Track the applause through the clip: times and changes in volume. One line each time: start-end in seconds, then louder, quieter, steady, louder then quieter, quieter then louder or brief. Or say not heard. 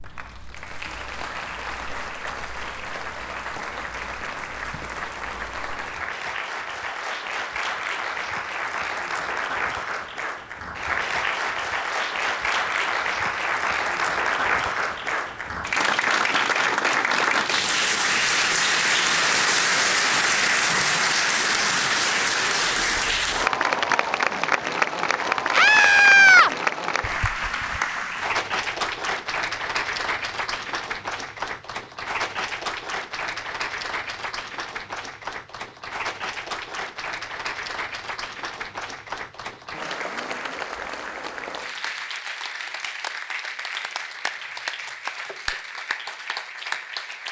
0.0-47.2 louder then quieter.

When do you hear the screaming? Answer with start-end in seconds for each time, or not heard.
25.5-26.5.